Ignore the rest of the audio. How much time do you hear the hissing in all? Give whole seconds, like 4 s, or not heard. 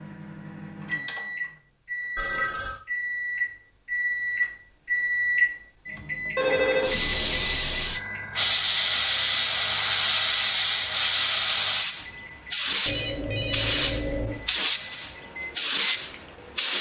10 s.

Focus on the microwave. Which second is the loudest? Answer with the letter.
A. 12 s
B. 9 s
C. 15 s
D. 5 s
D.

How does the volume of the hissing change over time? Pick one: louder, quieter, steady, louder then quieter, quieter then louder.
steady.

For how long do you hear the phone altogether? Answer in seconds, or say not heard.
3 s.